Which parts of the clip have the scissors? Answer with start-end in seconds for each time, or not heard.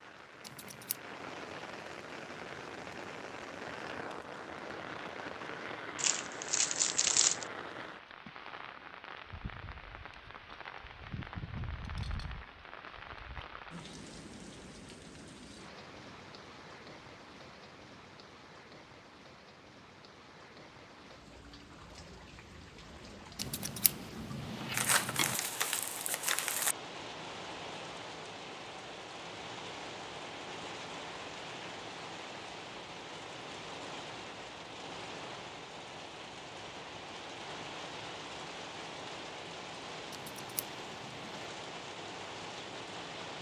0.4-1.0, 23.4-25.4, 40.1-41.5.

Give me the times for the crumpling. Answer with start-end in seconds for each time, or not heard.
6.0-7.5, 24.7-26.8.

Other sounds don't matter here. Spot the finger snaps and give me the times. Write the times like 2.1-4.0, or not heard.
not heard.